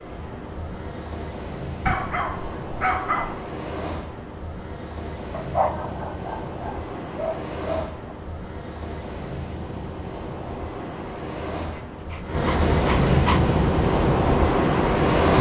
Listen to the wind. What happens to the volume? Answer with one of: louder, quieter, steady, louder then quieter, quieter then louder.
louder.